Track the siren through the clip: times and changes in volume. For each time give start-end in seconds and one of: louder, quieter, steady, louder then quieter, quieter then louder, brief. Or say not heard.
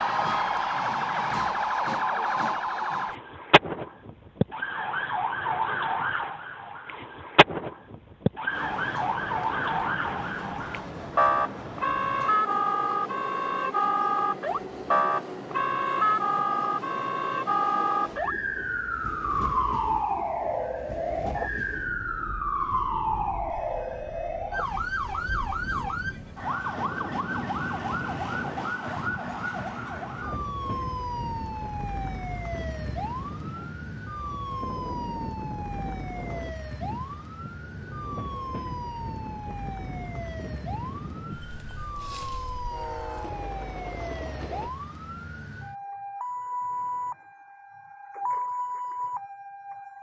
0.0-49.9 quieter.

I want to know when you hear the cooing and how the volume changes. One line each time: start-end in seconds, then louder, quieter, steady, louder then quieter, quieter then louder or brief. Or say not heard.
not heard.